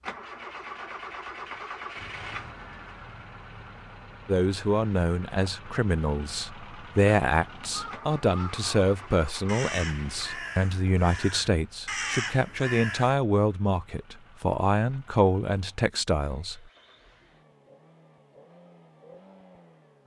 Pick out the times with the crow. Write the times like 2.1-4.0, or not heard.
7.5-13.2.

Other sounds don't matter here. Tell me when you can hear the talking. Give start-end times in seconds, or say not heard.
4.2-16.6.